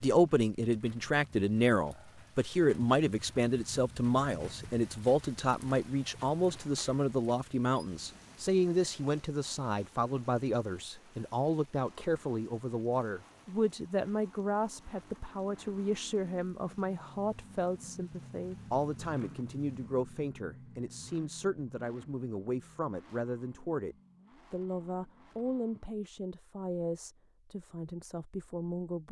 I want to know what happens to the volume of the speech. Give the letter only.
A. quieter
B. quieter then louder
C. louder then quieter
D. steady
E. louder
A.